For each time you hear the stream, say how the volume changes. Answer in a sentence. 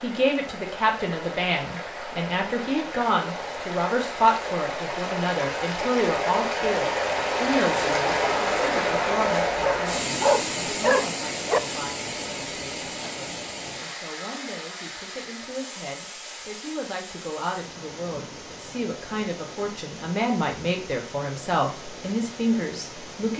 The stream can be heard from 0.0 to 23.3 s, getting louder then quieter.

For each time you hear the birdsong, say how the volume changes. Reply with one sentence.
You can't hear the birdsong here.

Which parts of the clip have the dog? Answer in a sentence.
You can hear the dog from 9.6 to 11.6 s.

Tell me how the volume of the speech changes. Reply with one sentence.
The volume of the speech goes down, then up.